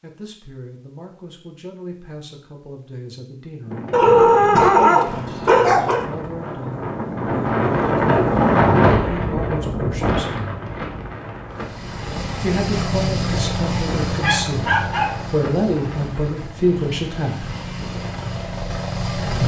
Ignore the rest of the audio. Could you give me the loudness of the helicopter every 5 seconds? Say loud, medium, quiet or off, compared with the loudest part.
off, off, loud, medium.